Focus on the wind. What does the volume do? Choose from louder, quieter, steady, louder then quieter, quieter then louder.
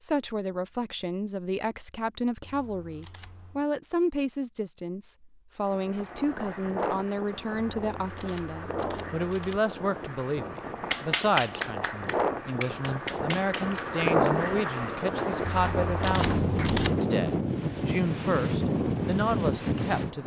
louder.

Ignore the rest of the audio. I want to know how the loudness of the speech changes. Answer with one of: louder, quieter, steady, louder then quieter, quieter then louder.
steady.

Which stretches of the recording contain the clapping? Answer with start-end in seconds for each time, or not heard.
10.9-16.7.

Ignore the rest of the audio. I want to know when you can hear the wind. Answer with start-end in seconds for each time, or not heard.
5.6-20.2.